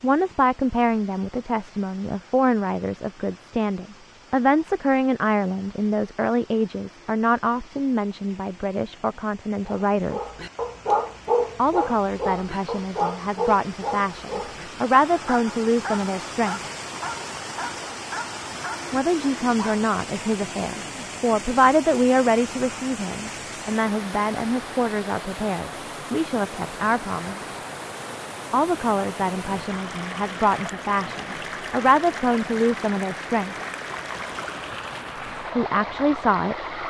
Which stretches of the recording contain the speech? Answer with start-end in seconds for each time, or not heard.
0.0-10.3, 11.6-16.6, 18.9-27.6, 28.5-33.5, 35.5-36.5.